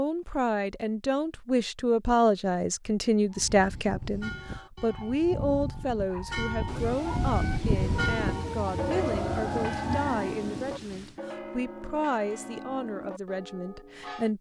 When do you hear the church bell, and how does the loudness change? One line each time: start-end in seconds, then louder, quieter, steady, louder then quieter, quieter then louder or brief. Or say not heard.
3.3-14.3 louder then quieter.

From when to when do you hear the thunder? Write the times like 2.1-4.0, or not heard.
6.7-11.2.